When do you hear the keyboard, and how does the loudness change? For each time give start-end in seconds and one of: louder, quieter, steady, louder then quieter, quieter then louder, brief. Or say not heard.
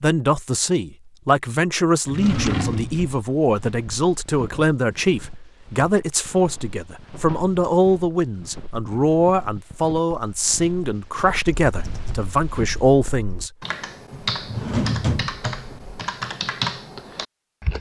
11.7-17.7 louder.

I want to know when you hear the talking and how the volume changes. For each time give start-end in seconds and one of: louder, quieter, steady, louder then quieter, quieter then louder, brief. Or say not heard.
0.0-13.5 steady.